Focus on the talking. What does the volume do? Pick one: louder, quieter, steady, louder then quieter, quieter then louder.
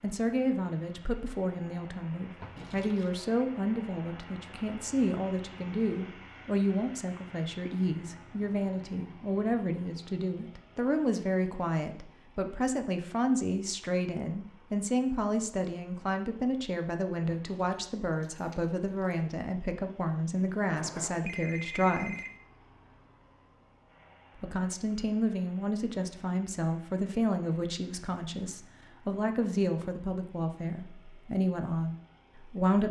steady.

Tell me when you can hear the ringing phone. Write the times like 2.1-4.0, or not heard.
20.8-22.3.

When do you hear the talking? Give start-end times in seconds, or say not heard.
0.0-22.1, 24.4-32.8.